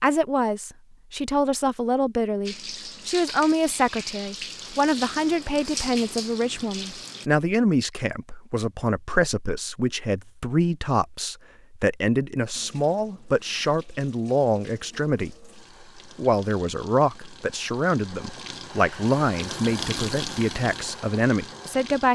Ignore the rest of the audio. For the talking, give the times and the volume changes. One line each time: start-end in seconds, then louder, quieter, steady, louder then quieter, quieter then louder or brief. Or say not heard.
0.0-22.1 steady.